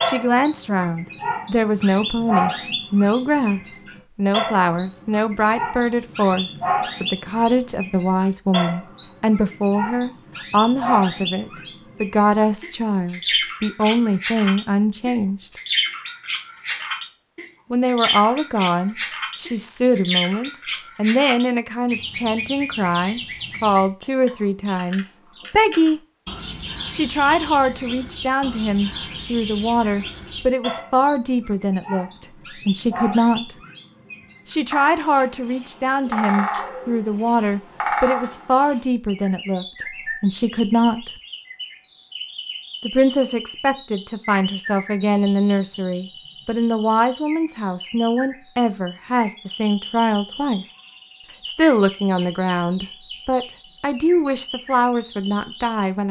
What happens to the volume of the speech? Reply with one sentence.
The loudness of the speech stays about the same.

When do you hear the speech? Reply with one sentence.
You can hear the speech from 0.1 to 15.5 s, from 17.7 to 26.0 s, from 26.9 to 33.5 s, from 34.5 to 41.1 s, from 42.8 to 50.6 s and from 51.5 to 56.0 s.